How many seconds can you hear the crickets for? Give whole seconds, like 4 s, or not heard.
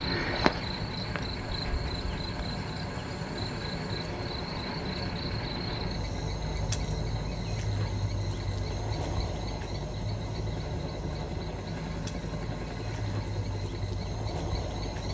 15 s.